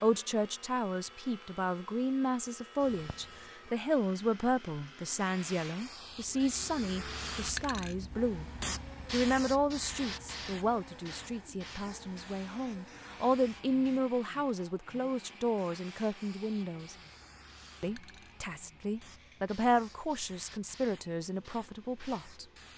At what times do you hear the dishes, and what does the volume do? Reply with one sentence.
The dishes can't be heard in this clip.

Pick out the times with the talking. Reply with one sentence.
You can hear the talking from 0.0 to 8.4 s, from 9.1 to 16.9 s and from 17.8 to 22.4 s.